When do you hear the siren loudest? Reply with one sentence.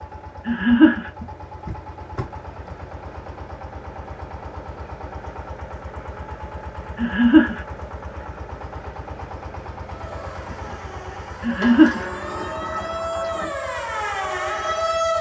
The loudest moment of the siren is at 15 seconds.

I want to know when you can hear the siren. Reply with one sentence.
The siren can be heard from 9.8 to 15.1 s.